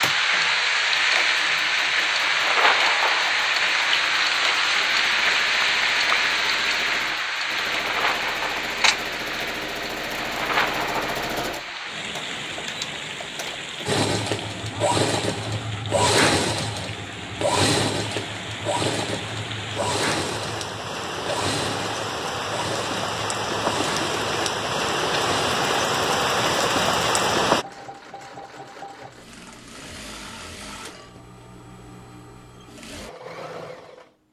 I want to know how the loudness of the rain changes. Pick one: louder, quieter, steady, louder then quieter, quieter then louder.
quieter then louder.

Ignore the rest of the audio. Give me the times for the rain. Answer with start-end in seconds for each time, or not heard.
0.0-27.6.